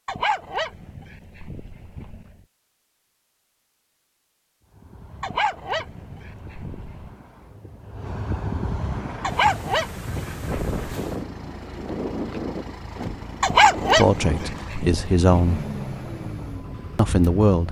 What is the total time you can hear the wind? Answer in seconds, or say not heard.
13 s.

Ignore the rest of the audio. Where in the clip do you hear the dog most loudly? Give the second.
14 s.